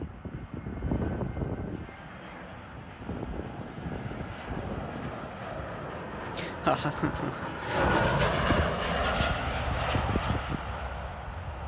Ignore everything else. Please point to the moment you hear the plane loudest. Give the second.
8 s.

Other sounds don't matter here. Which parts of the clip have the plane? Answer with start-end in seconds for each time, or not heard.
0.0-11.6.